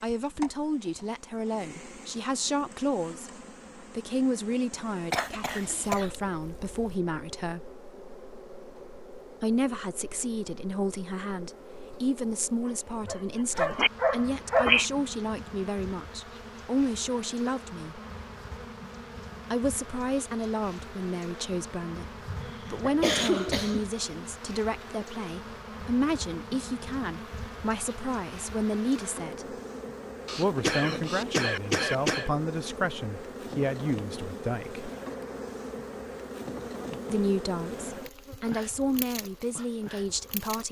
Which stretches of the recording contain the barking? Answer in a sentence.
You can hear the barking from 12.6 to 14.8 s.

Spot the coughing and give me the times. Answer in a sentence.
You can hear the coughing from 5.1 to 7.0 s, from 22.2 to 23.9 s and from 30.2 to 32.3 s.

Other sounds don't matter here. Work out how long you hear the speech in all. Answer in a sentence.
You can hear the speech for 34 seconds altogether.